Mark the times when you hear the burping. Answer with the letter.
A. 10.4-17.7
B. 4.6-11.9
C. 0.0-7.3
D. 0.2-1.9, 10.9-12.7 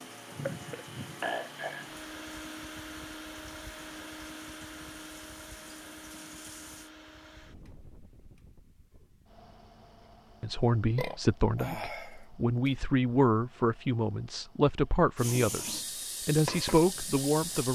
D.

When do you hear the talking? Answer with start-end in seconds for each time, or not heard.
10.4-17.7.